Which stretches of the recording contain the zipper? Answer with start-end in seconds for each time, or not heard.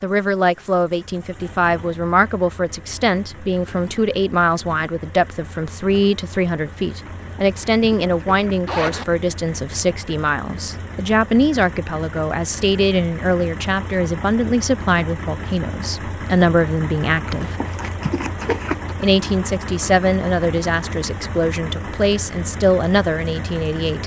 7.2-9.1, 17.2-18.9.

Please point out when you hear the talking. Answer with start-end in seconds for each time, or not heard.
0.0-17.6, 19.0-24.0.